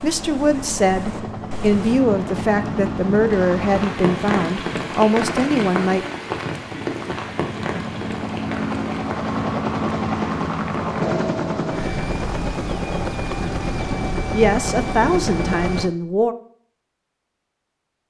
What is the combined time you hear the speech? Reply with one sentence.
You can hear the speech for 8 seconds altogether.